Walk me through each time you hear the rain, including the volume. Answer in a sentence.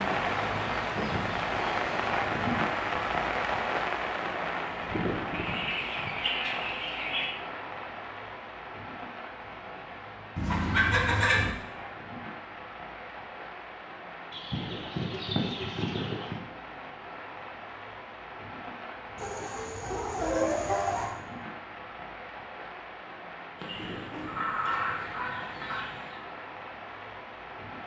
The rain can be heard from 0.0 to 27.8 s, getting quieter.